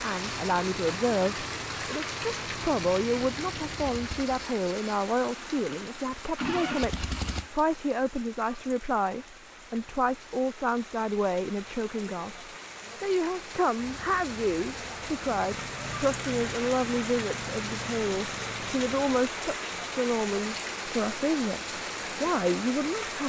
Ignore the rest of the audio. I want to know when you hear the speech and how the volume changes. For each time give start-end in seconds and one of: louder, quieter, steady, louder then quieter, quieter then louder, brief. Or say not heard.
0.0-23.2 steady.